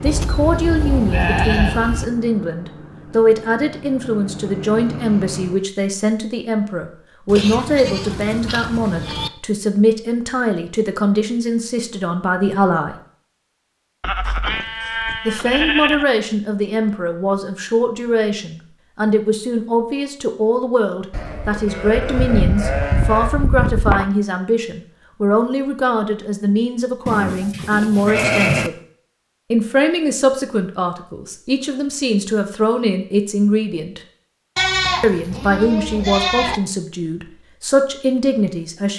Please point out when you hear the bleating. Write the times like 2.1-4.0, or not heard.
0.1-2.0, 7.2-9.3, 14.0-16.1, 21.1-24.1, 27.1-28.7, 34.5-36.6.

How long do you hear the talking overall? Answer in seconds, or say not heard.
35 s.